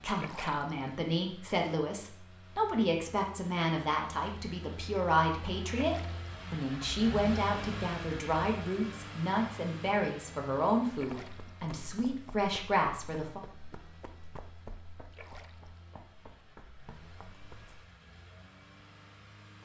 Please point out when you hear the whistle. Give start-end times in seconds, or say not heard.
not heard.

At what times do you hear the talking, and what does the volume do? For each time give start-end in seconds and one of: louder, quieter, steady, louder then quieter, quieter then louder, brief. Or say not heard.
0.0-13.4 steady.